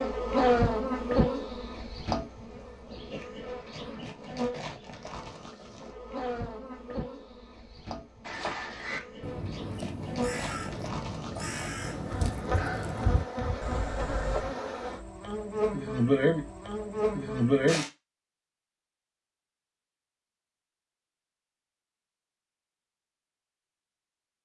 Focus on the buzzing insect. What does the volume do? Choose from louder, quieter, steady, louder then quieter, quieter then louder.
quieter then louder.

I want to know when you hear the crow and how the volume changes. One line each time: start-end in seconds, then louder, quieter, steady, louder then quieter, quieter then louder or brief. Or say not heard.
8.2-14.4 steady.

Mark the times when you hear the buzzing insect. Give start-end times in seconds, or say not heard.
0.0-17.9.